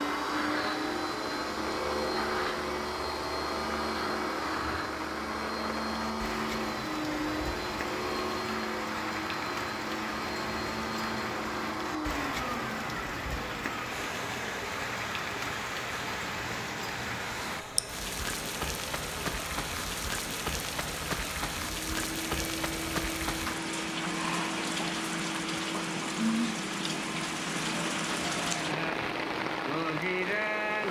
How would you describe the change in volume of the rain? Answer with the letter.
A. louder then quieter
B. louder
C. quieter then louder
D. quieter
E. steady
B.